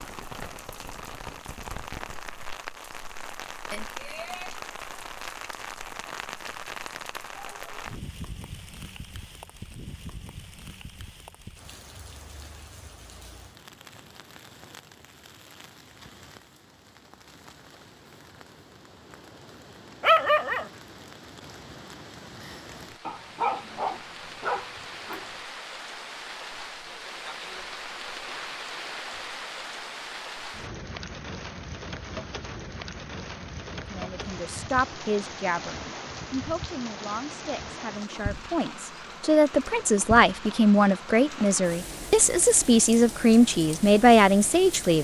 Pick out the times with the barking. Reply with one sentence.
The barking can be heard from 20.0 to 20.6 s and from 23.1 to 25.2 s.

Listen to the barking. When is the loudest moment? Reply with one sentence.
The volume of the barking peaks at 20 seconds.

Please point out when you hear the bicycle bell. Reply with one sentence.
You can hear the bicycle bell from 3.7 to 4.6 s.